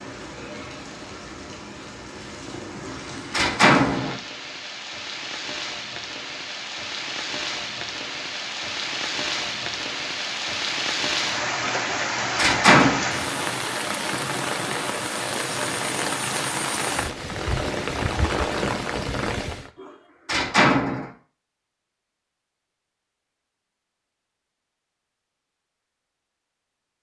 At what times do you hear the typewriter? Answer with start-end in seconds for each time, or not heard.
not heard.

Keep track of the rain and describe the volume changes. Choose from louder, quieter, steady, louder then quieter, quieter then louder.
louder.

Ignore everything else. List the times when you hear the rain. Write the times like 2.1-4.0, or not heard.
0.0-19.7.